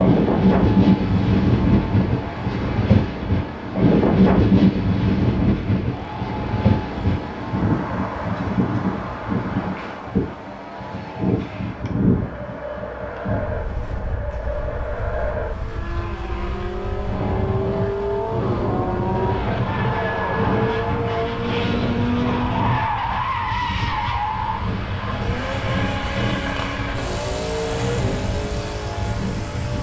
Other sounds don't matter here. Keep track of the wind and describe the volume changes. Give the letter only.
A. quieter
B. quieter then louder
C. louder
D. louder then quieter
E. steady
A.